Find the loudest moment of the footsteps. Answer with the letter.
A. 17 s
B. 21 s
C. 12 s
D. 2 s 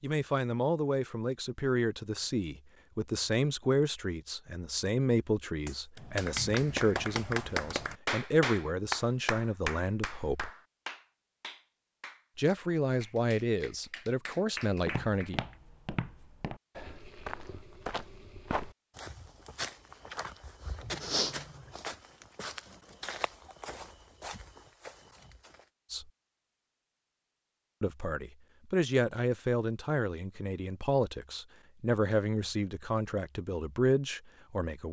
B.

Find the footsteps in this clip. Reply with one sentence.
The footsteps can be heard from 14.8 to 25.6 s.